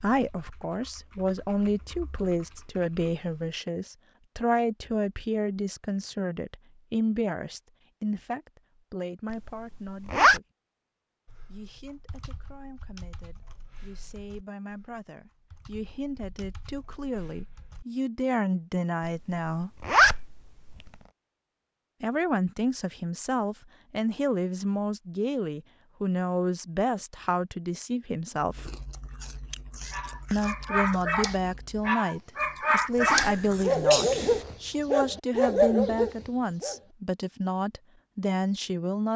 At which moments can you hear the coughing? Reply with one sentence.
The coughing can be heard from 33.1 to 34.5 s.